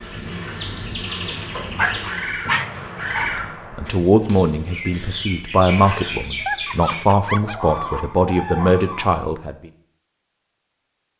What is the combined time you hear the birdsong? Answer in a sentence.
You can hear the birdsong for 9 seconds altogether.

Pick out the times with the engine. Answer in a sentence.
The engine can be heard from 0.0 to 2.6 s.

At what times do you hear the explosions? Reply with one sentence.
You can hear the explosions from 2.4 to 4.0 s.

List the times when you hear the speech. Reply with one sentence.
The speech can be heard from 3.2 to 9.7 s.